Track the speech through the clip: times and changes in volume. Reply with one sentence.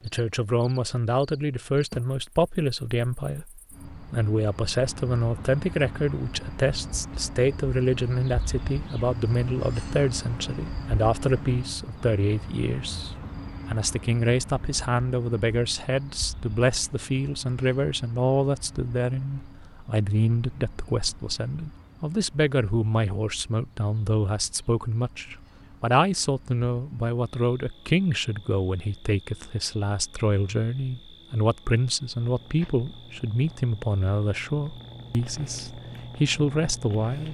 You can hear the speech from 0.0 to 37.3 s, at a steady volume.